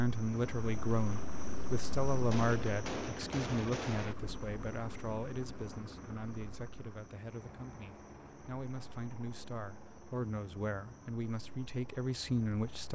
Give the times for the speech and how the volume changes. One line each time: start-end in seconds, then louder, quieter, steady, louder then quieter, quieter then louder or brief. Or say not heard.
0.0-12.9 quieter then louder.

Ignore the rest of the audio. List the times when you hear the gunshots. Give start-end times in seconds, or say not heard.
2.1-4.2.